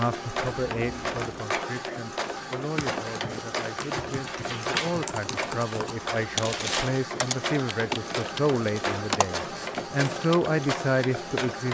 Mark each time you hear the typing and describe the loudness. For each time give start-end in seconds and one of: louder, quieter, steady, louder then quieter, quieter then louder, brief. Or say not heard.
2.8-10.5 louder.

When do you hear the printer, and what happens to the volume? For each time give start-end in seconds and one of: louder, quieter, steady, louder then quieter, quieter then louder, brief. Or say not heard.
0.0-11.6 steady.